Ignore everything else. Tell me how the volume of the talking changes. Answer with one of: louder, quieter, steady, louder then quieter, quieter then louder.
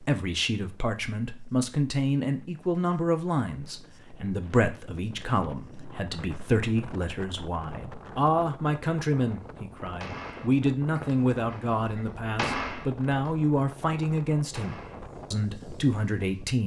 steady.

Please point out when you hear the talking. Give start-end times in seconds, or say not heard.
0.0-16.6.